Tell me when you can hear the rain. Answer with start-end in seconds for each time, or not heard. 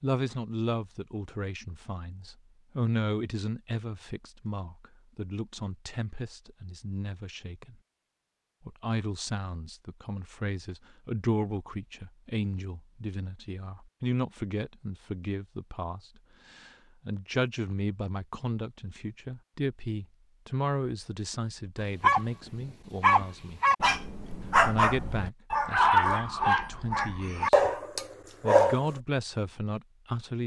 not heard.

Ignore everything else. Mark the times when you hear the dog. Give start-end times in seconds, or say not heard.
22.0-28.9.